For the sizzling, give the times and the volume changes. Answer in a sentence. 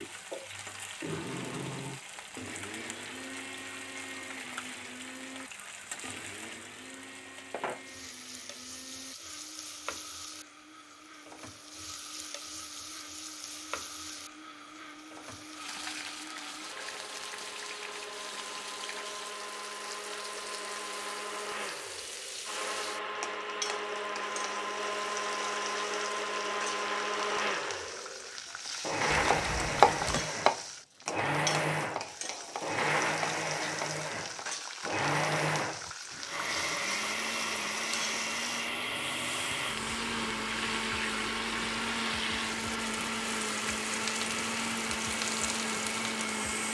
The sizzling can be heard from 0.0 to 46.7 s, getting louder.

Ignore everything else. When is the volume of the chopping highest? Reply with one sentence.
The loudest moment of the chopping is at 30 seconds.